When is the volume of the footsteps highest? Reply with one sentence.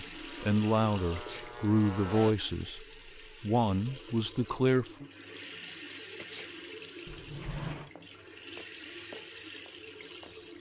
The loudest moment of the footsteps is at 9 seconds.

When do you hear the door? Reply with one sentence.
The door can be heard from 7.0 to 7.9 s.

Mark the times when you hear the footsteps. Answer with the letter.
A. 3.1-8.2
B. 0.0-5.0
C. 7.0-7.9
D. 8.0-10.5
D.